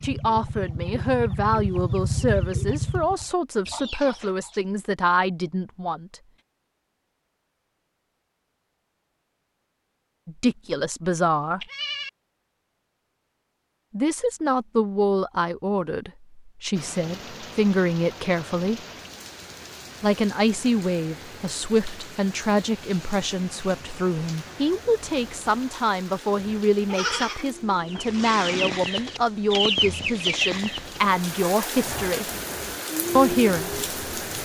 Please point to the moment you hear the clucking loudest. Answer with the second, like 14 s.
30 s.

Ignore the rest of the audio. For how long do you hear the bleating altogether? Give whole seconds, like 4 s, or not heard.
3 s.